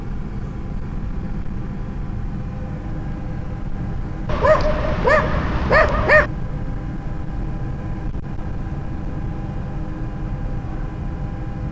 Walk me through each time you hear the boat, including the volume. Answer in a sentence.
You can hear the boat from 0.0 to 11.6 s, at a steady volume.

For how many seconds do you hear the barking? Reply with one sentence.
The barking can be heard for 2 seconds in total.